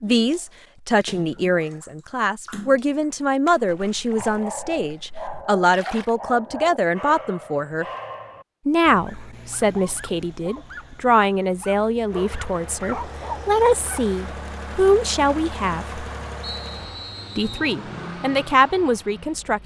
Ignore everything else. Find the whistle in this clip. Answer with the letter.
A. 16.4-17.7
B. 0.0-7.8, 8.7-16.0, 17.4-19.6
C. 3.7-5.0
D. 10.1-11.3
A.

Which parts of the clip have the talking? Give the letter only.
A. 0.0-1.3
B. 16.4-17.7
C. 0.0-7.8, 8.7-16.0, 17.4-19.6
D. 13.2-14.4
C.